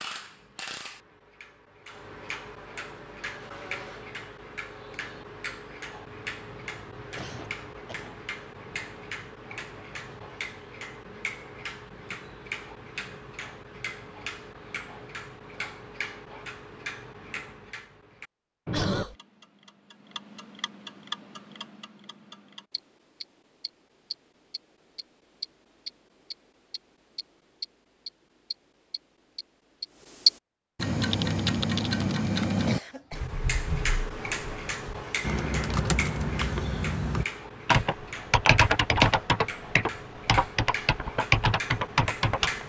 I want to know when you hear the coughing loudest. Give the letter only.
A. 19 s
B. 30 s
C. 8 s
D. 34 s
A.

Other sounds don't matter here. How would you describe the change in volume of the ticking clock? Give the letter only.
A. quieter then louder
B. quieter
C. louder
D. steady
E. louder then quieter
E.